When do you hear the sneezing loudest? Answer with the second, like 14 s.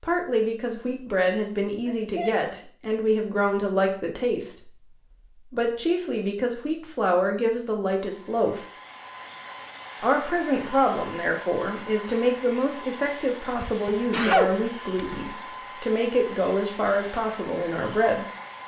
14 s.